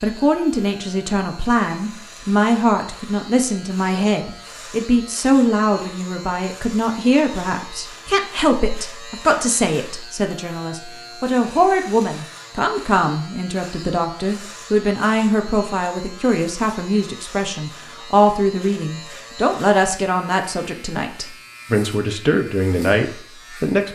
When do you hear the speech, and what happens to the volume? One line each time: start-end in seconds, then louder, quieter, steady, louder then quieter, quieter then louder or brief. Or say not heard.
0.0-23.9 steady.